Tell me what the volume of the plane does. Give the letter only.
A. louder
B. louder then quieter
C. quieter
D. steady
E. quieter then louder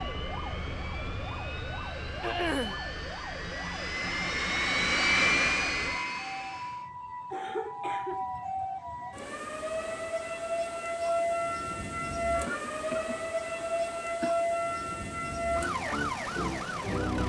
A.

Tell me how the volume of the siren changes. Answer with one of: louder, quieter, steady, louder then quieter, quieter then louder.
louder.